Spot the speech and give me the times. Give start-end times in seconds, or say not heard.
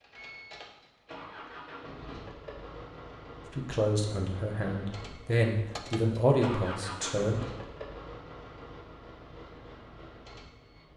3.5-7.4.